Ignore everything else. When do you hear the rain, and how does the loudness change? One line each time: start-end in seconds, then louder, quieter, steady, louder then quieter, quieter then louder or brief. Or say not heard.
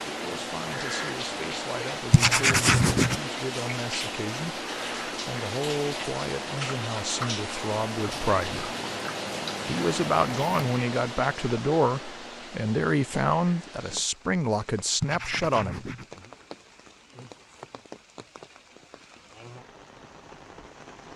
0.0-21.1 quieter.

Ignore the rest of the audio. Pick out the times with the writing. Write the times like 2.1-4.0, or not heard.
2.1-3.2, 8.1-10.7, 15.0-16.1.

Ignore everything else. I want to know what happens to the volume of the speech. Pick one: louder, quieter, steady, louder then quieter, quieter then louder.
louder.